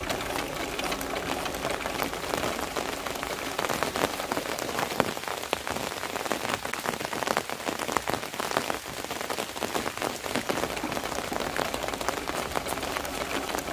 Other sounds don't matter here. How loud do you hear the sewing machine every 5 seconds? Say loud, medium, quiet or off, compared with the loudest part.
loud, off, loud.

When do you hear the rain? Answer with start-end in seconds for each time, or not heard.
0.0-13.6.